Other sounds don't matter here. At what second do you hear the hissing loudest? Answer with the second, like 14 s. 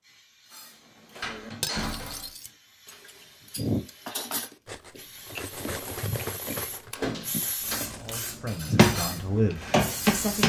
9 s.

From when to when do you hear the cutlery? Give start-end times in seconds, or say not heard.
0.5-9.8.